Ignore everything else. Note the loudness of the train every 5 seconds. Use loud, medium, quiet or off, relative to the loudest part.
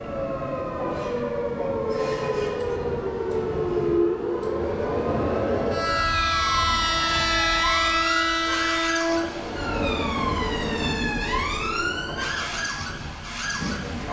medium, loud, medium.